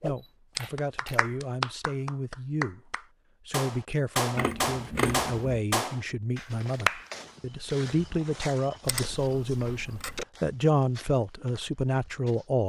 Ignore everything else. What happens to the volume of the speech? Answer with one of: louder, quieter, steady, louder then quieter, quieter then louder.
louder.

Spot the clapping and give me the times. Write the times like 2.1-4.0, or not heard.
0.0-7.0.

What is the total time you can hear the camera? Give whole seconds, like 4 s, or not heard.
4 s.